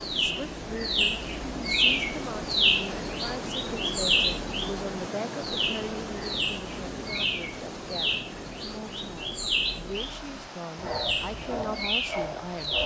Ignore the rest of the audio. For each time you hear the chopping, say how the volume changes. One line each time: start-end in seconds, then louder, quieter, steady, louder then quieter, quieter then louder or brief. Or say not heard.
not heard.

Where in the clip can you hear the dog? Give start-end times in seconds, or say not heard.
10.8-12.8.